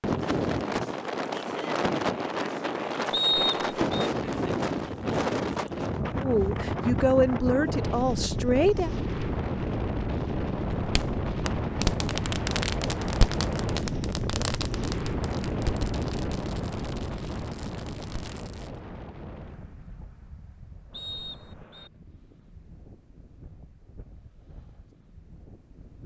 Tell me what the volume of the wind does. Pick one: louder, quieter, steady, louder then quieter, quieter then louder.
quieter.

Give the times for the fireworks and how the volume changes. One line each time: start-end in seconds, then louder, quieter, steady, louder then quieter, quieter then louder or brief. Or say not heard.
10.8-18.7 quieter.